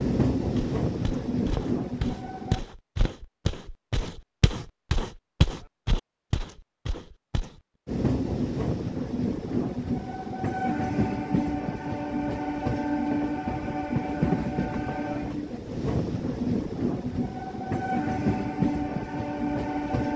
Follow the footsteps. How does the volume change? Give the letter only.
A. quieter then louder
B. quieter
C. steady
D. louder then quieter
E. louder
D.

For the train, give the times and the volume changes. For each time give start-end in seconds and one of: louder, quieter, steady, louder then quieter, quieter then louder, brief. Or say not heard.
0.0-2.6 brief
7.8-20.1 steady.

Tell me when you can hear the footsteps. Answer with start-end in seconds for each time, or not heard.
0.6-7.6.